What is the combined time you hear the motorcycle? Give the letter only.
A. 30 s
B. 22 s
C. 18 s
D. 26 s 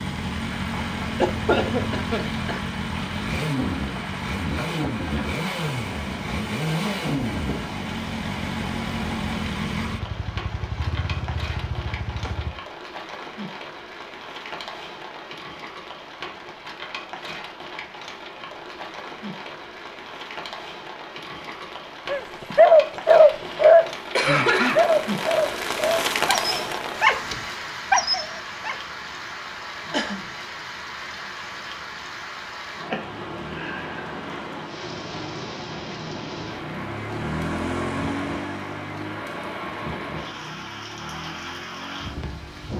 B.